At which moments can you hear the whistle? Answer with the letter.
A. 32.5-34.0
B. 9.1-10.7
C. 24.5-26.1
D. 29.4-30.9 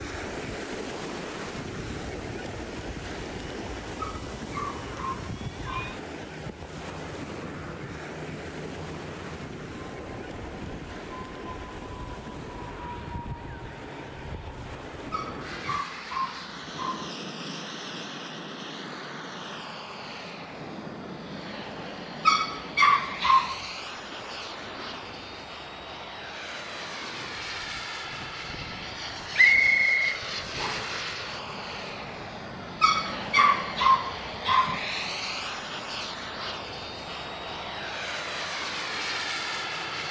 D.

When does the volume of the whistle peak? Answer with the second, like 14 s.
30 s.